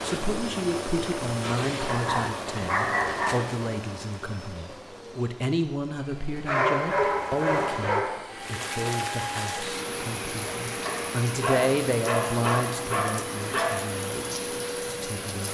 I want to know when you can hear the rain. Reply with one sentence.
You can hear the rain from 0.0 to 15.5 s.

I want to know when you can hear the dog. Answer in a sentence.
The dog can be heard from 1.9 to 3.4 s, from 6.5 to 8.2 s and from 10.8 to 13.8 s.